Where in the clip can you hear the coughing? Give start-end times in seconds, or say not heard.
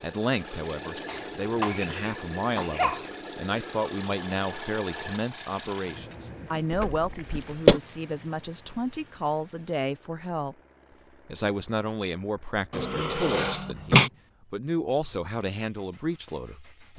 1.1-3.0, 6.9-7.8, 12.7-14.1.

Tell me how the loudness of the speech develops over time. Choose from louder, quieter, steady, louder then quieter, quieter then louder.
steady.